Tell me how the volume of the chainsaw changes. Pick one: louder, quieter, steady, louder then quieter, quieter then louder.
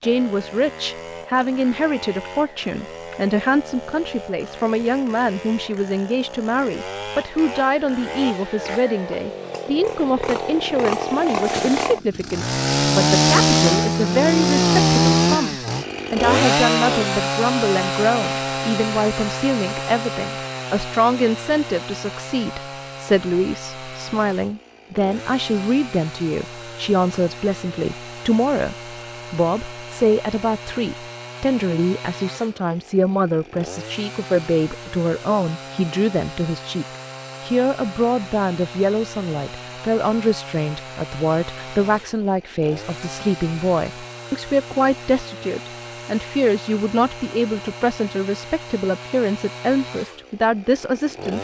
louder then quieter.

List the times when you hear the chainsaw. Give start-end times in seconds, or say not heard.
0.0-51.4.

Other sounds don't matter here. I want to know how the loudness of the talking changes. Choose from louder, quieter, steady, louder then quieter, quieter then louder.
steady.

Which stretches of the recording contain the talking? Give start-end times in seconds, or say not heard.
0.0-51.4.